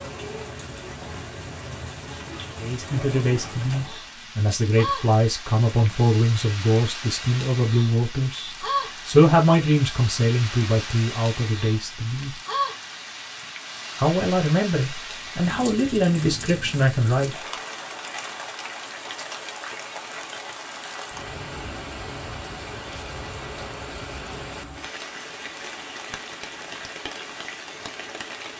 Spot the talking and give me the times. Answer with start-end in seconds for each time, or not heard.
2.5-12.3, 13.9-17.3.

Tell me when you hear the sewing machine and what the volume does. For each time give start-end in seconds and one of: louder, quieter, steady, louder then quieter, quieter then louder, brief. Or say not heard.
not heard.